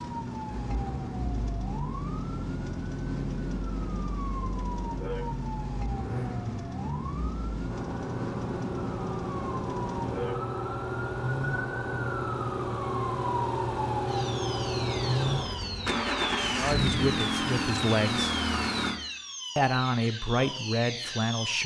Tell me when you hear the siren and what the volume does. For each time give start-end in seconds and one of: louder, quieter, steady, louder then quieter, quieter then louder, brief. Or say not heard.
0.0-21.6 steady.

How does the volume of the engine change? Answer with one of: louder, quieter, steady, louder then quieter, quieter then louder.
louder.